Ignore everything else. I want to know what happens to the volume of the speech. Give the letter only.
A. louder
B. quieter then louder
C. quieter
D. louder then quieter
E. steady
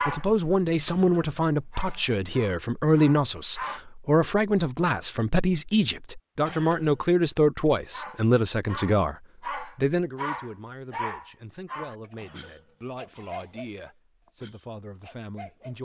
C.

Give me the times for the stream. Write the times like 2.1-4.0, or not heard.
not heard.